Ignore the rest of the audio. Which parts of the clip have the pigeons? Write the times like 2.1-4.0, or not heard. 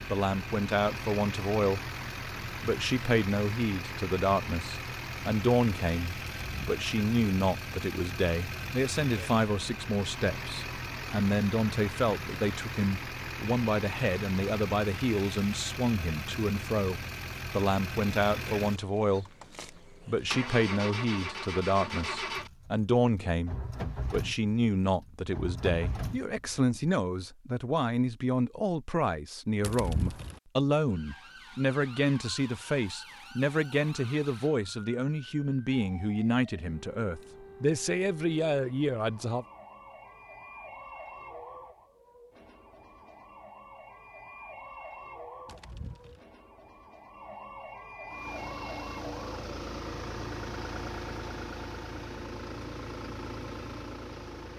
6.3-6.8, 29.6-30.4, 45.5-46.2.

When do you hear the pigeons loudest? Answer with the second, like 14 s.
30 s.